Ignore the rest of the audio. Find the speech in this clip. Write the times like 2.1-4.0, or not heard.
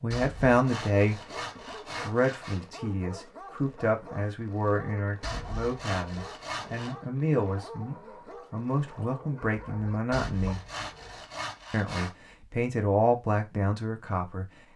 0.0-10.6, 11.7-14.4.